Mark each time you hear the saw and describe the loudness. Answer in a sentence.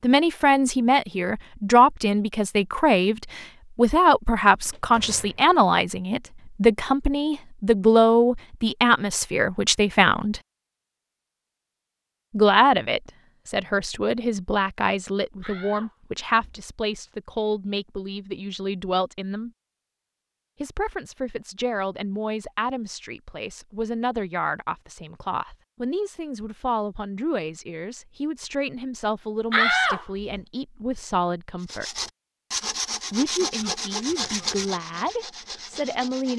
You can hear the saw from 31.6 to 36.3 s, getting quieter.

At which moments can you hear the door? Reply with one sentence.
The door can be heard from 4.7 to 5.5 s, from 15.4 to 17.1 s and from 29.5 to 30.2 s.